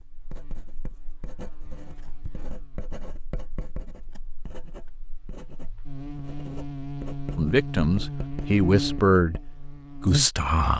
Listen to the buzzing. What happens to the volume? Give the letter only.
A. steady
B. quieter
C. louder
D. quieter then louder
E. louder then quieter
C.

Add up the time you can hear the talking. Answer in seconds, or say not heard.
3 s.